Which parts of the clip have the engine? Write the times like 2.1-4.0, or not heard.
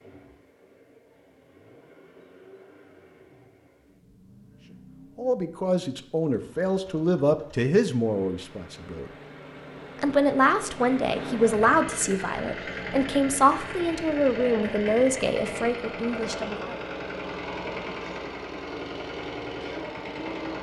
0.0-20.5.